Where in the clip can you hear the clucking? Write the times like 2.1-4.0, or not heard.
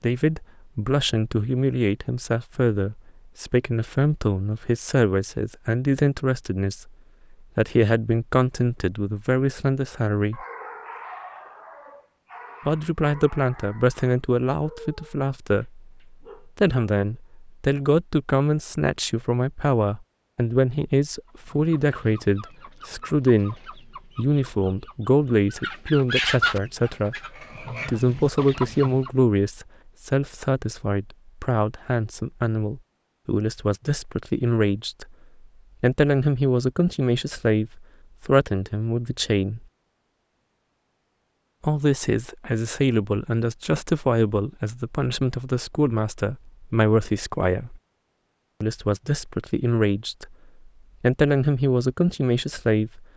21.2-29.1.